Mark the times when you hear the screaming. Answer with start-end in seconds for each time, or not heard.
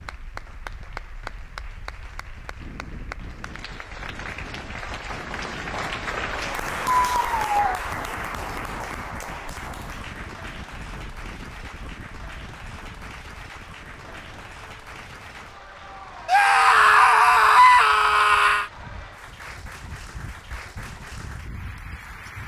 7.0-7.8, 16.2-18.7.